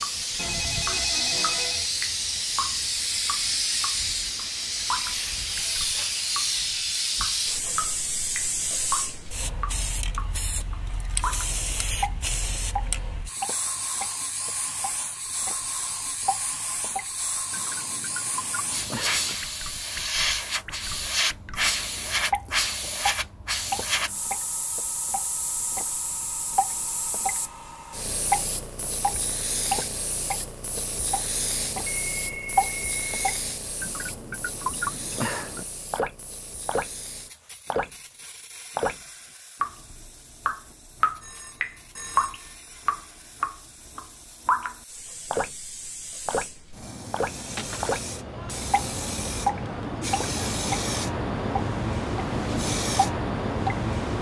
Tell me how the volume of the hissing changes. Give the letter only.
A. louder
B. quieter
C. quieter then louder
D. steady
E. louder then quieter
C.